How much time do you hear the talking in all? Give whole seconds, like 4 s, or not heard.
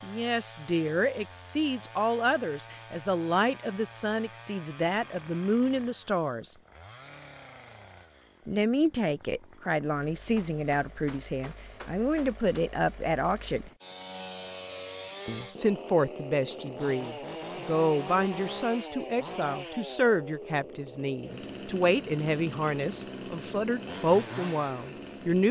22 s.